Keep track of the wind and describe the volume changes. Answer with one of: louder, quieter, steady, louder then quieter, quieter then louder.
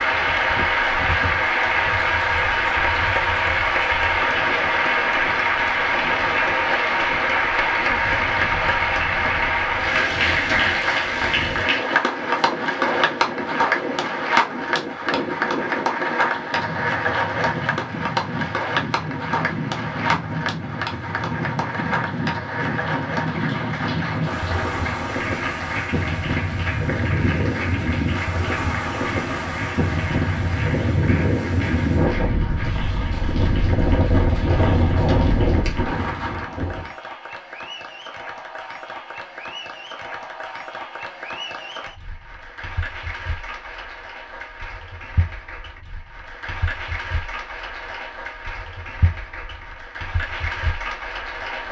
louder.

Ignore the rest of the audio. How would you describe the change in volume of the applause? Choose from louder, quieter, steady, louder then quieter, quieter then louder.
quieter.